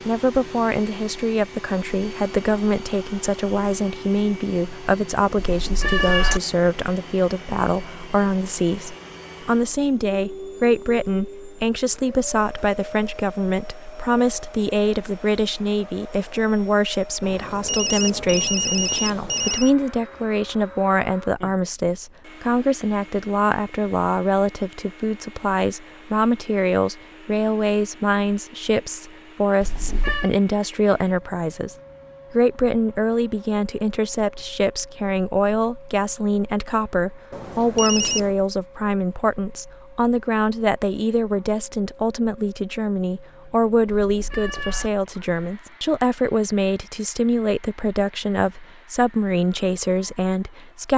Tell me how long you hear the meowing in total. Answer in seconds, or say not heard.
3 s.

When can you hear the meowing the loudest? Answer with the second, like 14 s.
6 s.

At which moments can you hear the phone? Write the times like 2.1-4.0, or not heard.
17.2-19.7, 37.3-38.4.